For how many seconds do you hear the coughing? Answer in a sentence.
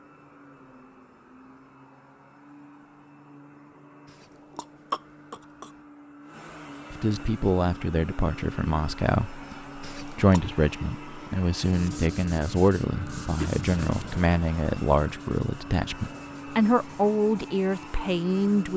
The coughing can be heard for 2 seconds in total.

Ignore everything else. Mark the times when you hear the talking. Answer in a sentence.
You can hear the talking from 6.9 to 18.7 s.